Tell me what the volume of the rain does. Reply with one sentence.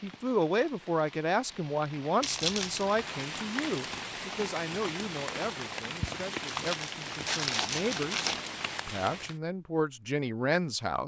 The loudness of the rain goes up.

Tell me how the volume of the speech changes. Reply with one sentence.
The volume of the speech goes down, then up.